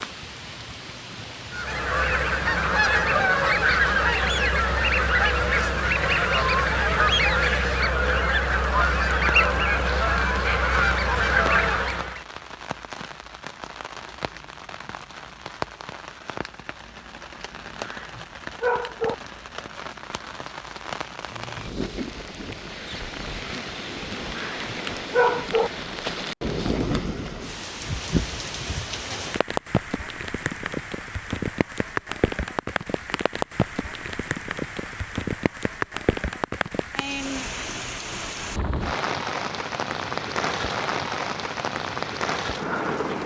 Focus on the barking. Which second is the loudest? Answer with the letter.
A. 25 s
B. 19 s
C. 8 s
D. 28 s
A.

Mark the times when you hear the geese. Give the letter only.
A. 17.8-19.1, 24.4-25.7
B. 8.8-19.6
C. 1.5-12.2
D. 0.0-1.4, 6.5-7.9
C.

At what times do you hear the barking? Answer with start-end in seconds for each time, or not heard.
17.8-19.1, 24.4-25.7.